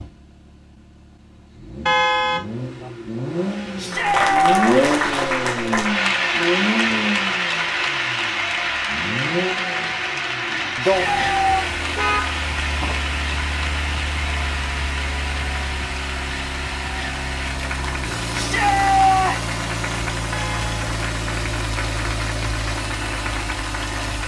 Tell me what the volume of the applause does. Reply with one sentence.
The loudness of the applause goes down.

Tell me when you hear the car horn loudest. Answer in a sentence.
The volume of the car horn peaks at 2 seconds.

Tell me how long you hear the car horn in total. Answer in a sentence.
The car horn can be heard for 3 seconds in total.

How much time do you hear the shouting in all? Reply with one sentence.
The shouting can be heard for 3 seconds in total.